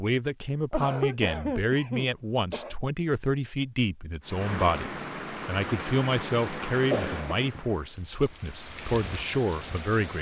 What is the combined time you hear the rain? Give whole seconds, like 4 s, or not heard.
6 s.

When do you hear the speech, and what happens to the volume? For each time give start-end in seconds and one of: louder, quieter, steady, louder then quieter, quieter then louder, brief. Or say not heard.
0.0-10.1 steady.